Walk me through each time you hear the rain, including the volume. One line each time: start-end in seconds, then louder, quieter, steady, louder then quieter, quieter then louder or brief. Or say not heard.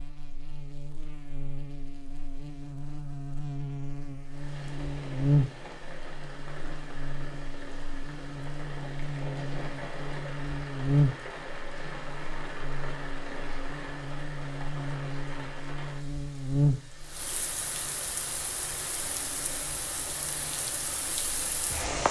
4.2-22.0 louder.